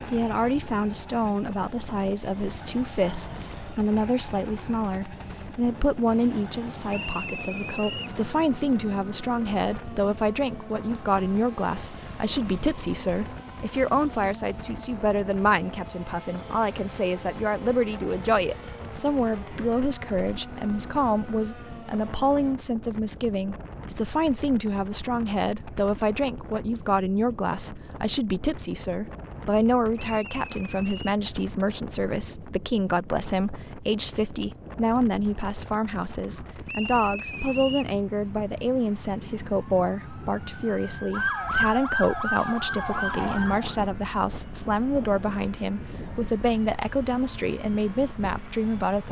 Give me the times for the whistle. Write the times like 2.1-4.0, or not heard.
6.9-8.2, 29.9-31.1, 36.6-38.0.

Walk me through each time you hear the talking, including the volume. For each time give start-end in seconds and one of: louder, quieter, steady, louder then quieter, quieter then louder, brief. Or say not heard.
0.1-49.0 steady.